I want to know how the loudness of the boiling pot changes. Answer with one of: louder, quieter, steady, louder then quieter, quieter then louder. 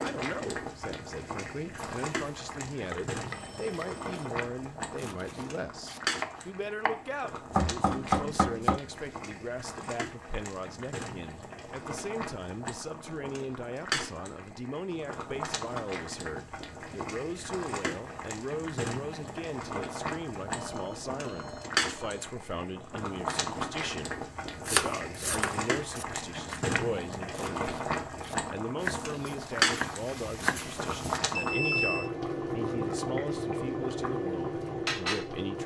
louder.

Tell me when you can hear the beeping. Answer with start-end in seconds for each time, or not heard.
3.3-4.2, 20.4-22.2, 31.4-32.1.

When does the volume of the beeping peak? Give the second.
32 s.